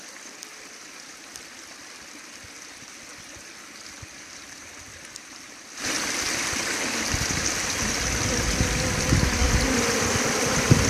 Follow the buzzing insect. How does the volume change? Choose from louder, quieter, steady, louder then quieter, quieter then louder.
louder.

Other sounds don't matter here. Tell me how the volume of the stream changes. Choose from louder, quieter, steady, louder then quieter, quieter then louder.
louder.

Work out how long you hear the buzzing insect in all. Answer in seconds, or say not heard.
4 s.